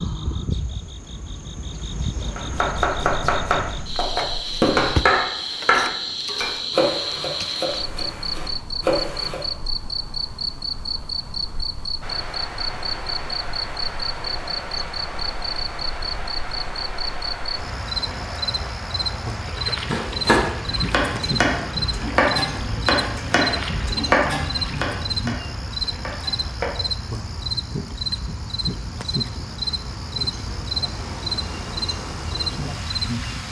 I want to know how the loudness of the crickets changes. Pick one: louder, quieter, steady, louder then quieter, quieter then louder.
steady.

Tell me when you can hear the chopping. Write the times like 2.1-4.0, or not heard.
2.4-9.4, 19.9-26.8.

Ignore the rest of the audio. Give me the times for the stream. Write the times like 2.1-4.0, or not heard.
12.0-33.4.